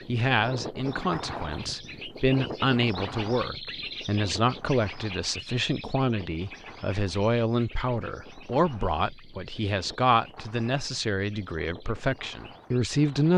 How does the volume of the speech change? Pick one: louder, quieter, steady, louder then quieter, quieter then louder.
steady.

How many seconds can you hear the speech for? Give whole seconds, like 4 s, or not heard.
13 s.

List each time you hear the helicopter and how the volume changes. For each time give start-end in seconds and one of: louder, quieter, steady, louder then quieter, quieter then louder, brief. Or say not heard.
not heard.